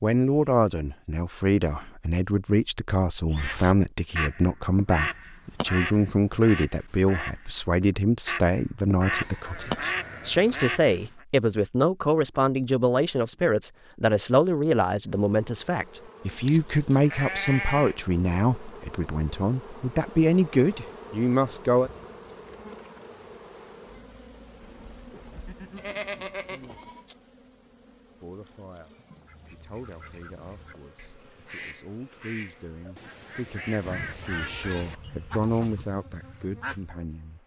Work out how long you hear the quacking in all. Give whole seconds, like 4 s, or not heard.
16 s.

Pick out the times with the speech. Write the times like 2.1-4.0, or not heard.
0.0-21.9, 28.2-37.4.